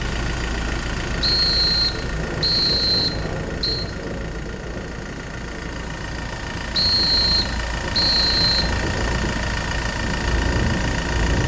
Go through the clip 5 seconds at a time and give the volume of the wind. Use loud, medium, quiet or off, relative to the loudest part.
medium, medium, loud.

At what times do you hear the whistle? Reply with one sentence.
The whistle can be heard from 1.2 to 3.9 s and from 6.8 to 8.7 s.